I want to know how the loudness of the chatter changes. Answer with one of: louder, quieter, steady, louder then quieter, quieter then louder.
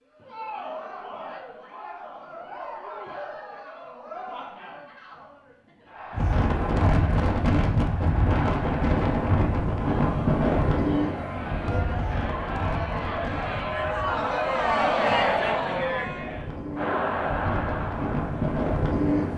louder.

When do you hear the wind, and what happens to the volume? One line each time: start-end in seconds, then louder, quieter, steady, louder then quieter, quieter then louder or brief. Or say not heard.
6.1-19.3 quieter then louder.